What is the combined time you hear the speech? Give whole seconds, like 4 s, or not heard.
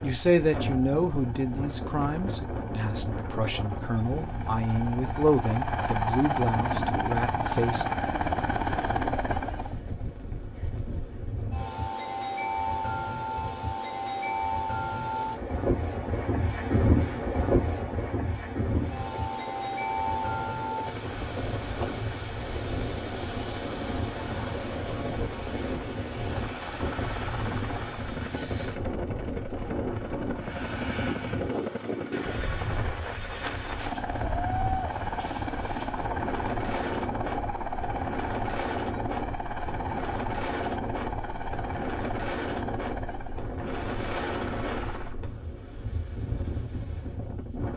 8 s.